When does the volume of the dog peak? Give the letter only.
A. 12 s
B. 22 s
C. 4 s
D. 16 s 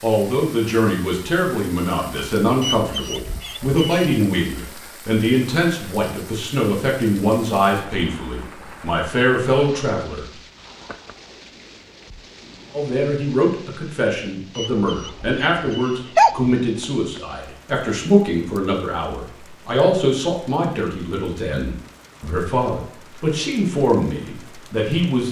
D.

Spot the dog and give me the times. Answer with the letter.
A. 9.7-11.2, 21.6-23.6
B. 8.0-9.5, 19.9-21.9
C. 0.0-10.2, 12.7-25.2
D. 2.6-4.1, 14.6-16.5
D.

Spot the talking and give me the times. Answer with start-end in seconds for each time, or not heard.
0.0-10.2, 12.7-25.2.